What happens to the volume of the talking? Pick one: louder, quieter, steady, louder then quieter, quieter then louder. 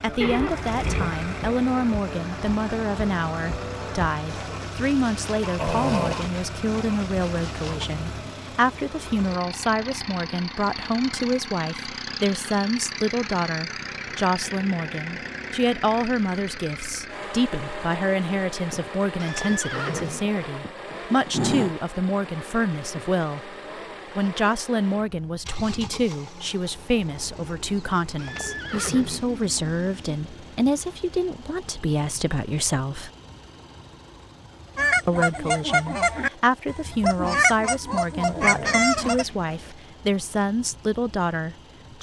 steady.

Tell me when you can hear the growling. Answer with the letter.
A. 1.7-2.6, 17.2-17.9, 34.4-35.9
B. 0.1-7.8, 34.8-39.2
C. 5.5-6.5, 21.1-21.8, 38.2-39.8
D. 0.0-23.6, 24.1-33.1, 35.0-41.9
C.